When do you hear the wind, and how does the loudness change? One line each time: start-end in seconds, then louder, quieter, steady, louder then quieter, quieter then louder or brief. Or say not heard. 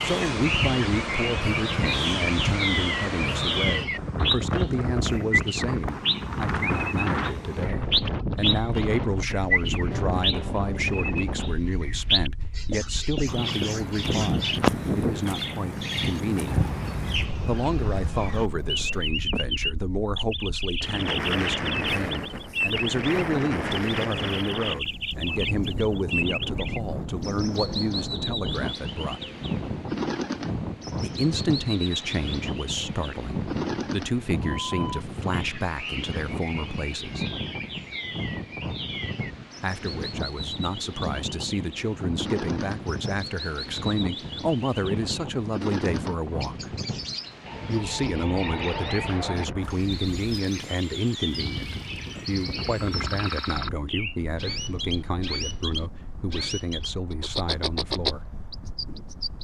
0.0-59.3 quieter.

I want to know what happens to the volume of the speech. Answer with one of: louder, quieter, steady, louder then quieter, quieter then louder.
steady.